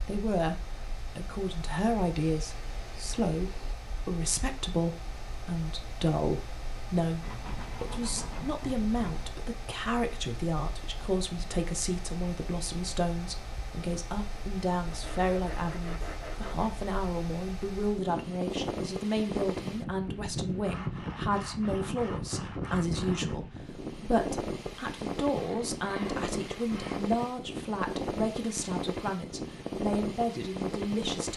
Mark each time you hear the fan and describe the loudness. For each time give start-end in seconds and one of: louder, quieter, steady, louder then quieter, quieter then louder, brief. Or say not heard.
0.0-31.3 louder.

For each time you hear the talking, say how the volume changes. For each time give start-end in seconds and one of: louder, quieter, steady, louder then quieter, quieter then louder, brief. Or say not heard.
0.1-0.6 brief
1.1-31.3 steady.